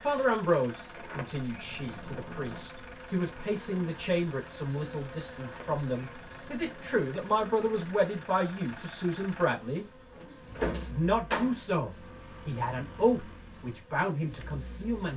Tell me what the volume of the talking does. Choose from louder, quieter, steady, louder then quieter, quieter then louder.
steady.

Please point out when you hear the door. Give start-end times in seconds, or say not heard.
0.9-2.7, 5.3-7.0, 10.1-11.6.